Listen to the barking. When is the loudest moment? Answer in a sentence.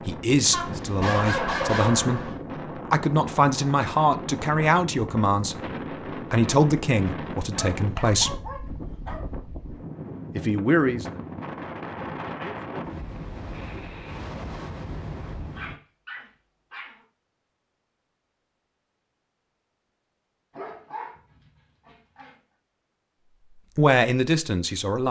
The volume of the barking peaks at 2 seconds.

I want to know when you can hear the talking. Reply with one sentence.
You can hear the talking from 0.1 to 8.4 s, from 10.3 to 11.1 s and from 23.8 to 25.0 s.